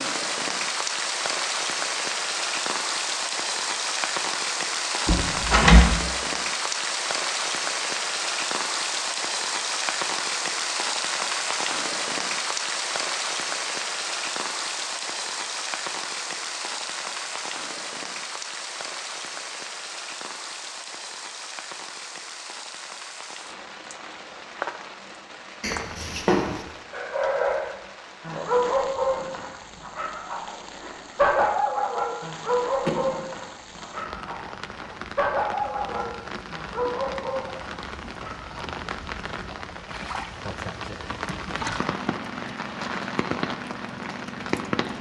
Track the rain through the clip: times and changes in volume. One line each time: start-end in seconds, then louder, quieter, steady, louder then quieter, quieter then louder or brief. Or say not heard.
0.0-44.9 quieter then louder.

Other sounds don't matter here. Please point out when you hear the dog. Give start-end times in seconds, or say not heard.
26.9-38.6.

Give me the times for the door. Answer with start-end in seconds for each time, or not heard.
5.0-6.0, 25.6-26.6, 32.8-33.4.